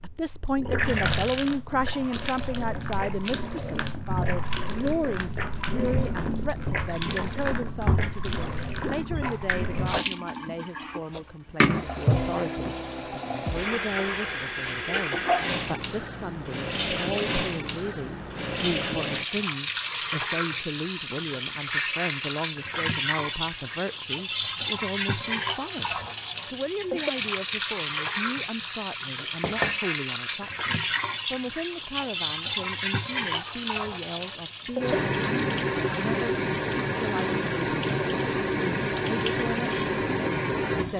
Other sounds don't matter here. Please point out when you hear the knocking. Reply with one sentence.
You can hear the knocking from 29.4 to 29.8 s.